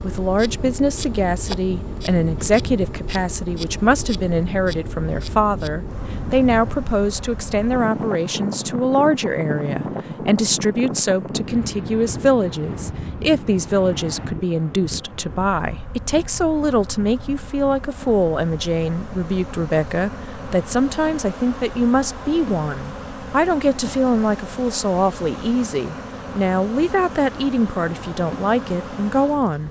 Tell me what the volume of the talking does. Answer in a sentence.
The loudness of the talking stays about the same.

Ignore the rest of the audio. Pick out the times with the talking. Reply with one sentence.
You can hear the talking from 0.0 to 29.6 s.